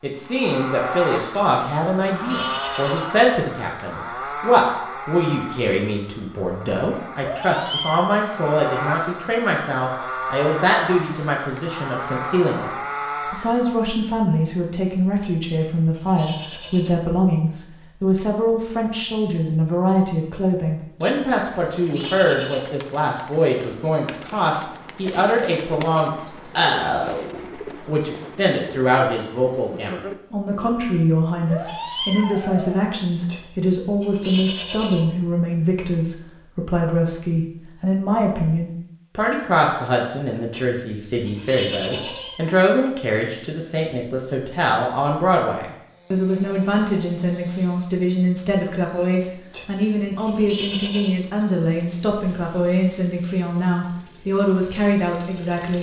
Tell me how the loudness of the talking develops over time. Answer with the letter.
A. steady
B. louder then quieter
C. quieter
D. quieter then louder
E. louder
A.